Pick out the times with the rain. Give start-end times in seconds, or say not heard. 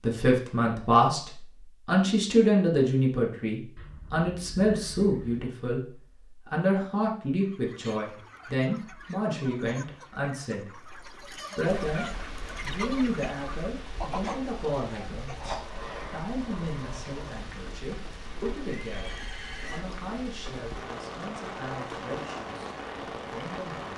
11.7-23.9.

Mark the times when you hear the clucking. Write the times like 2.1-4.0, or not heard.
7.3-15.6.